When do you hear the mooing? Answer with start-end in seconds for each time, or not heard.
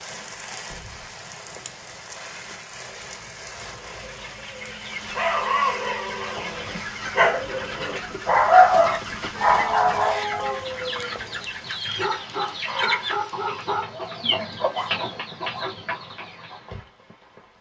not heard.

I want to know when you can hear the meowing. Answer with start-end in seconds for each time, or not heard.
0.6-1.1, 9.3-11.4.